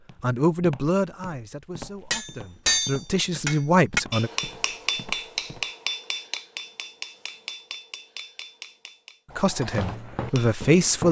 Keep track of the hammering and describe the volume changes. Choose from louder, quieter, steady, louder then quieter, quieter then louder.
quieter.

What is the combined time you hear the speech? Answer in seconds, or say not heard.
6 s.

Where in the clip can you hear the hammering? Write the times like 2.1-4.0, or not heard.
2.1-10.6.